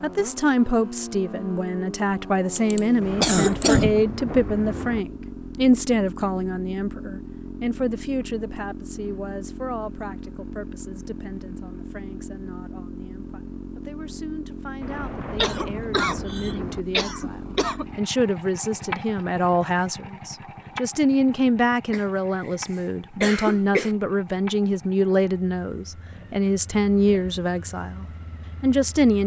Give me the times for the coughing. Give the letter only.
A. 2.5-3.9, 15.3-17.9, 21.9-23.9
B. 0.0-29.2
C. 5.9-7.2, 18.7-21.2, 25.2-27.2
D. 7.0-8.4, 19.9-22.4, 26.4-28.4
A.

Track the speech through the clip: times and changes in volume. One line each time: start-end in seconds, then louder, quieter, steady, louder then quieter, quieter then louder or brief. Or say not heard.
0.0-29.2 quieter then louder.